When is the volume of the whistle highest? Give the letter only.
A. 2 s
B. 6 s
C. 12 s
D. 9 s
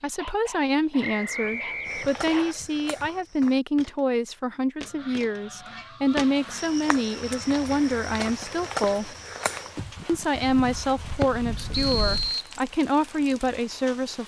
C.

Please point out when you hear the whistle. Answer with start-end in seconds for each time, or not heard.
1.0-2.5, 11.7-12.6.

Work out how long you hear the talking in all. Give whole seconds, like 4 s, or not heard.
13 s.